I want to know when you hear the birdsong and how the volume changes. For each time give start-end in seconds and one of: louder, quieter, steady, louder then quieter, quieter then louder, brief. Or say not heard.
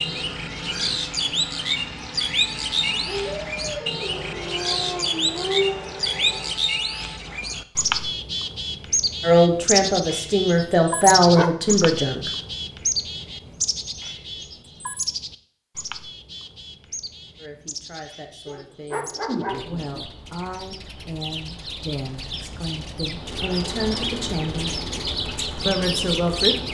0.0-26.6 quieter then louder.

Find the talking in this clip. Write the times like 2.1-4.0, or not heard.
9.2-12.3, 17.4-24.8, 25.6-26.6.